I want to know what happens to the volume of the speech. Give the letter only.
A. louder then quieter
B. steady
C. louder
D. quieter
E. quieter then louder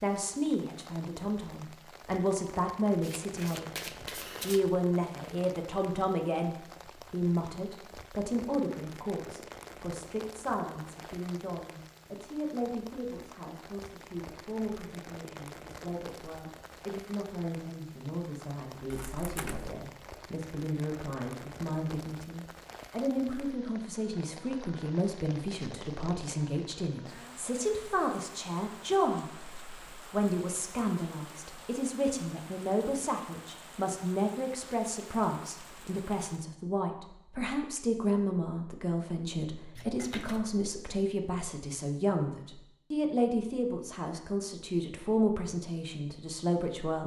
E.